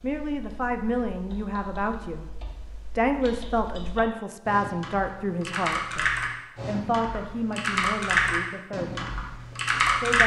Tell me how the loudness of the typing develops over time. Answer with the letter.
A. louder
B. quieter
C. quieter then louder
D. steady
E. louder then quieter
A.